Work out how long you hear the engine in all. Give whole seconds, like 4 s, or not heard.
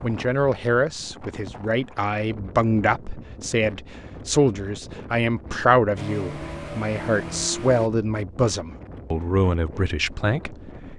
2 s.